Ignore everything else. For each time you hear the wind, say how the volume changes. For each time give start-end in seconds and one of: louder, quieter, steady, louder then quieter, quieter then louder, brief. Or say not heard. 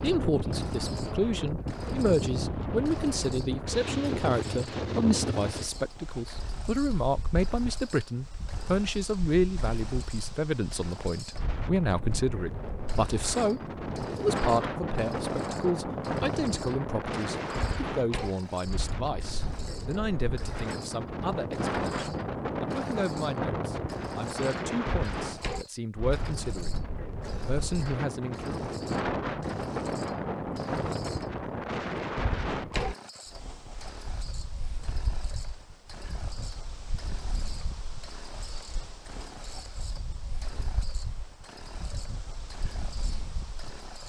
0.0-44.0 quieter.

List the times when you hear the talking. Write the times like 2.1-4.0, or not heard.
0.0-28.7.